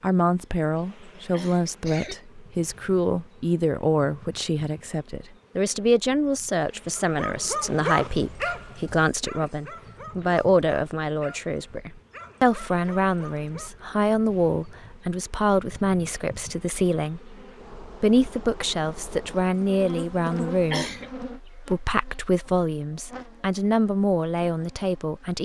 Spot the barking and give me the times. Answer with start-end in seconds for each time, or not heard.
7.0-13.7.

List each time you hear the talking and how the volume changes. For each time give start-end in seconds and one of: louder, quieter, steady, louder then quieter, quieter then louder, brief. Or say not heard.
0.0-25.4 steady.